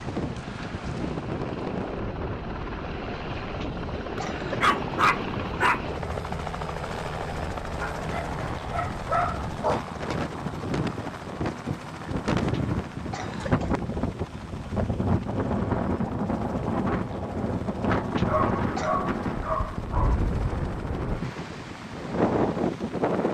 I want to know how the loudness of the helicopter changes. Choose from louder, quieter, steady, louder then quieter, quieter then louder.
quieter.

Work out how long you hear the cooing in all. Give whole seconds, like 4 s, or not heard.
not heard.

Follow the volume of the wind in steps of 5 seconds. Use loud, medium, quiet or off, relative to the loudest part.
medium, medium, loud, loud, loud.